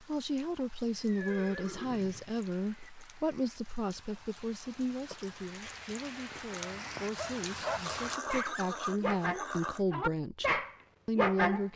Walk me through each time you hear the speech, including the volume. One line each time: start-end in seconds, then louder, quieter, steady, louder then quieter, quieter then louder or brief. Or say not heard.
0.0-11.7 quieter then louder.